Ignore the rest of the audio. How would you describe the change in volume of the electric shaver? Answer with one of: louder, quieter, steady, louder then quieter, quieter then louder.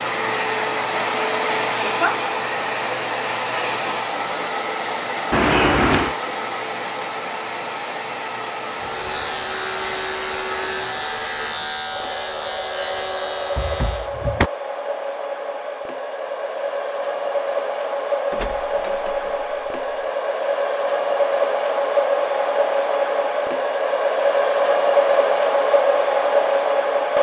steady.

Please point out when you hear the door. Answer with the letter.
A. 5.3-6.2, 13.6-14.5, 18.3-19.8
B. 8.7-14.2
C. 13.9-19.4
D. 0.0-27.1
A.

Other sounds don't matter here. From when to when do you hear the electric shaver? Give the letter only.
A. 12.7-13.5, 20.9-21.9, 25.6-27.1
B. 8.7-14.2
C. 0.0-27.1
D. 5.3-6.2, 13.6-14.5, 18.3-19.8
B.